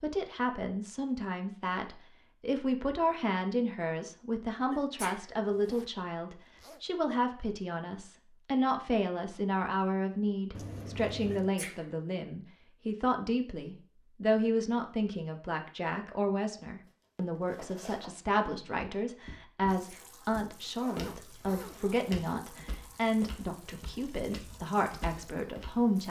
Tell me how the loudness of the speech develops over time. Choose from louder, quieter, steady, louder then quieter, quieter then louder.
steady.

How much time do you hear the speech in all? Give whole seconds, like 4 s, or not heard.
26 s.